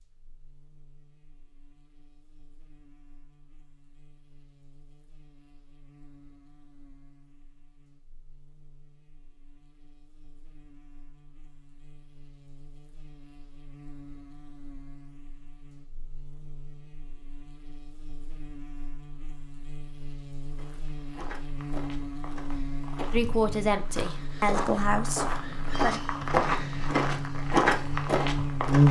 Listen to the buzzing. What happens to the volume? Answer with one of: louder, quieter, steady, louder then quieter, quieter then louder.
louder.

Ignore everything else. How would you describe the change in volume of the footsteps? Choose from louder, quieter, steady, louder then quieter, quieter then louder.
louder.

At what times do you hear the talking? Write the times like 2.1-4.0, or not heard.
23.1-26.0.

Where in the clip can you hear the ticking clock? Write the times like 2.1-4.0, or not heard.
not heard.